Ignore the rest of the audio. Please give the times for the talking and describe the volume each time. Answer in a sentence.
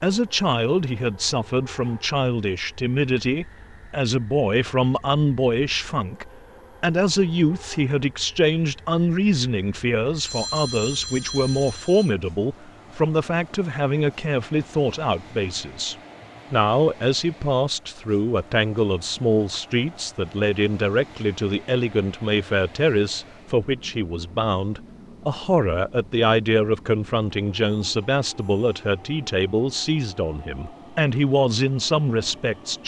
The talking can be heard from 0.0 to 32.8 s, at a steady volume.